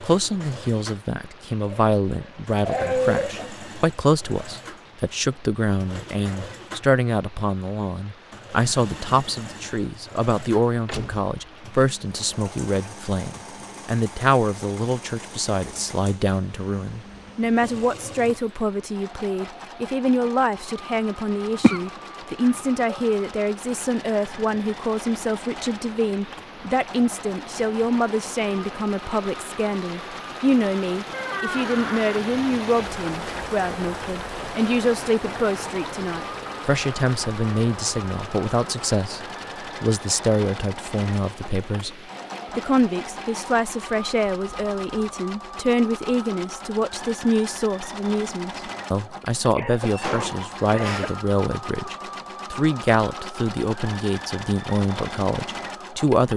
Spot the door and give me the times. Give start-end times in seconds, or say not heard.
10.8-11.3, 31.1-32.2, 49.9-51.4.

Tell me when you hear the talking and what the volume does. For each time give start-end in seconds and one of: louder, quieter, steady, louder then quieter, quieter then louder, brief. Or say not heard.
0.0-42.0 steady
42.5-56.3 steady.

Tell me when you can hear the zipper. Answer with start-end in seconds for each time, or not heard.
not heard.